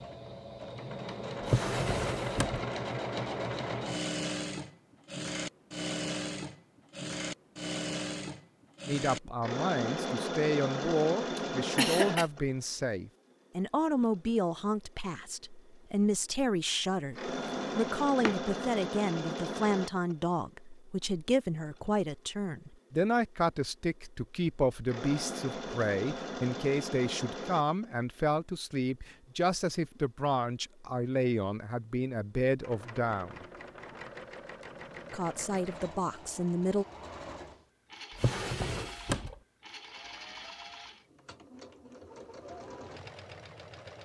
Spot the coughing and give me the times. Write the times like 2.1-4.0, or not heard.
11.3-12.2.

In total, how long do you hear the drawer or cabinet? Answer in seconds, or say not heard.
4 s.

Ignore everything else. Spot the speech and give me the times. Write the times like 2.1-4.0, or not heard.
8.8-33.5, 35.1-36.9.